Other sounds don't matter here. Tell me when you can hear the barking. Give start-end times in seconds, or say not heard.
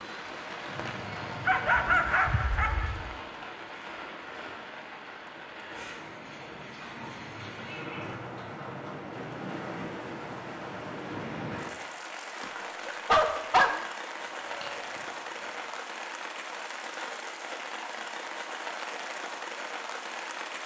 1.4-3.0, 12.4-13.8.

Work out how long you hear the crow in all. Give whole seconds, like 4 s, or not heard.
not heard.